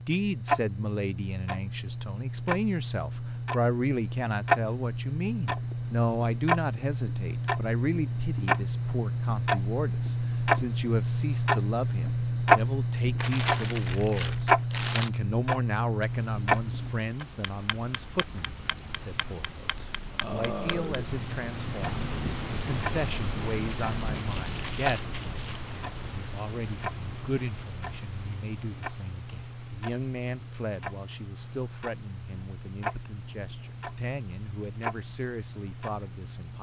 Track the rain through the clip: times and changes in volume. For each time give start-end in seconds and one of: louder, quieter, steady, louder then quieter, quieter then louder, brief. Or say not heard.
16.0-36.5 louder then quieter.